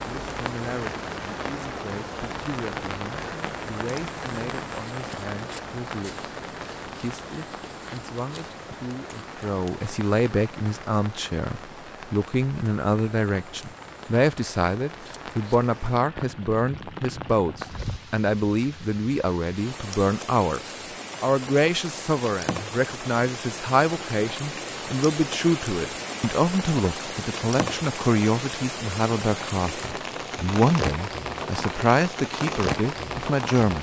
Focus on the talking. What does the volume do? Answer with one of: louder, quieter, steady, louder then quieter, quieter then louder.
louder.